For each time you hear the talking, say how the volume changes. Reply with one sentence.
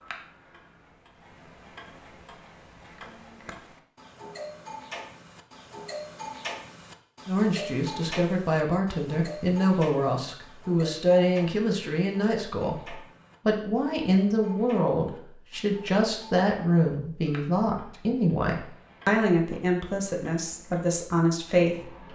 You can hear the talking from 7.2 to 22.1 s, at a steady volume.